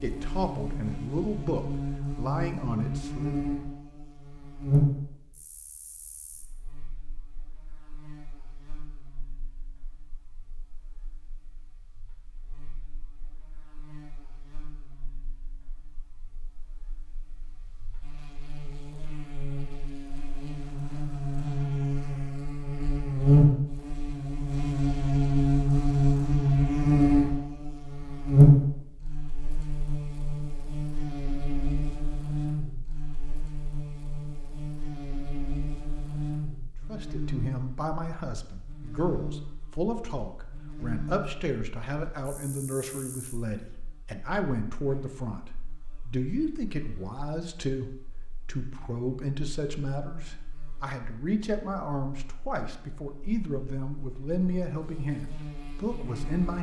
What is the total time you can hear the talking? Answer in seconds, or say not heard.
23 s.